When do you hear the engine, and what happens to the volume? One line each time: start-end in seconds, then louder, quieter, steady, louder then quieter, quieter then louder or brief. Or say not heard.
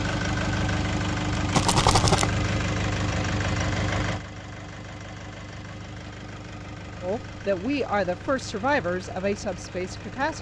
0.0-10.3 quieter.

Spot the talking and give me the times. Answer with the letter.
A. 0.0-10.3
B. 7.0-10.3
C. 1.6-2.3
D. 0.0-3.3
B.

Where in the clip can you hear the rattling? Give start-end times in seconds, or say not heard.
1.6-2.3.